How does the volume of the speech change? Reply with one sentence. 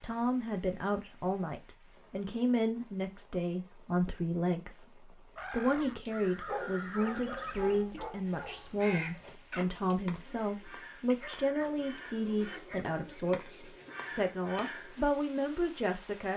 The loudness of the speech stays about the same.